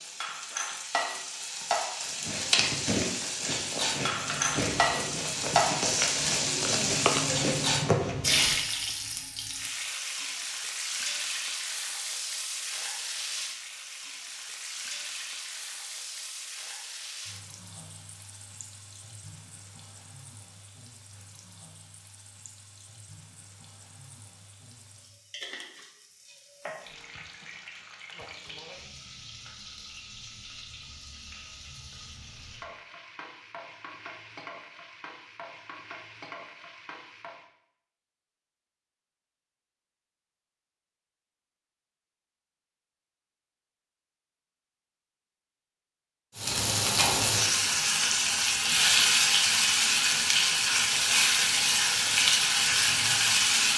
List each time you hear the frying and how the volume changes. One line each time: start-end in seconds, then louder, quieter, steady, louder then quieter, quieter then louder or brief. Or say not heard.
0.0-37.5 quieter
46.4-53.7 steady.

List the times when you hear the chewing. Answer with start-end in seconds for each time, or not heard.
2.0-8.6.